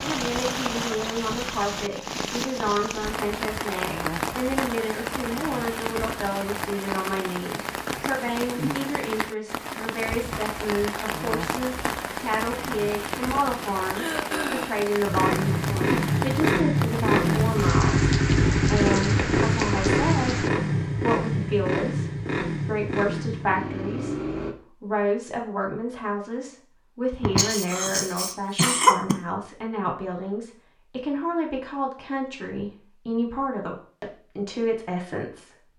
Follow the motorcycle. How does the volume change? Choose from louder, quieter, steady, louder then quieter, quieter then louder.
quieter.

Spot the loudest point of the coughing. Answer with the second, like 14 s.
29 s.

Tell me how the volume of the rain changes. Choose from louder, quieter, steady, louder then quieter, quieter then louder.
steady.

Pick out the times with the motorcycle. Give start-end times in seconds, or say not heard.
15.1-24.6.